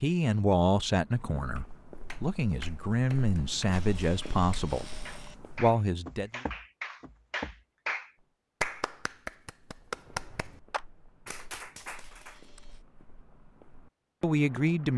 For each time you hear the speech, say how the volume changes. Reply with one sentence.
You can hear the speech from 0.0 to 4.8 s, getting quieter then louder; briefly from 5.5 to 6.4 s; and briefly from 14.2 to 14.9 s.